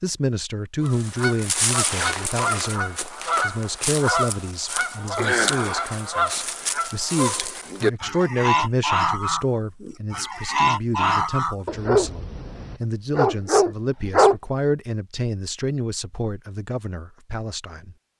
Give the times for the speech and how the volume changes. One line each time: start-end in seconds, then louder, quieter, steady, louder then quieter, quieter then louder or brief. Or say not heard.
0.0-17.9 steady.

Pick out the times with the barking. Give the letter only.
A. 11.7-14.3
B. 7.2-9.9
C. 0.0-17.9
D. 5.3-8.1
A.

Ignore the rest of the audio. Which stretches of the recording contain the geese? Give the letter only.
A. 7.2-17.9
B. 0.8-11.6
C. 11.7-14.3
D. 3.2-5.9
B.